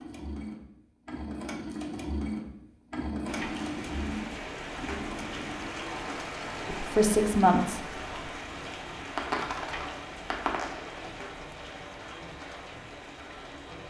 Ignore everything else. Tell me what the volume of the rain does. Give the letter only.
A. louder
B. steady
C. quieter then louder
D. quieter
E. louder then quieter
D.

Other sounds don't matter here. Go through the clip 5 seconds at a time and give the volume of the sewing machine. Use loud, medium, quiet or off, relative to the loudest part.
loud, medium, medium.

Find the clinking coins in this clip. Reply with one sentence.
You can hear the clinking coins from 9.2 to 11.1 s.